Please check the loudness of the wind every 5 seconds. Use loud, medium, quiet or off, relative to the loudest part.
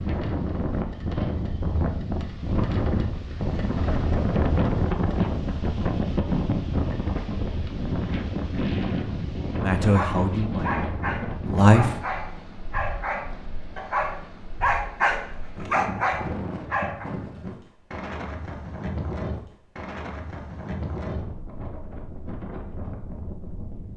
loud, loud, medium, medium, medium.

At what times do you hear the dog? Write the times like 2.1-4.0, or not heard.
9.8-17.1.